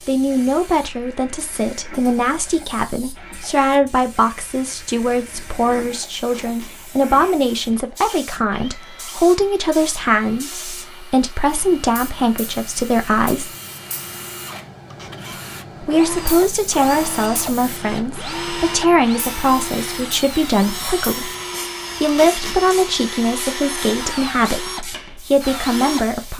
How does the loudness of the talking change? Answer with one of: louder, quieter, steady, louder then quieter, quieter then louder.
steady.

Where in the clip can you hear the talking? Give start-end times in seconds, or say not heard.
0.1-13.5, 15.8-21.3, 22.0-26.3.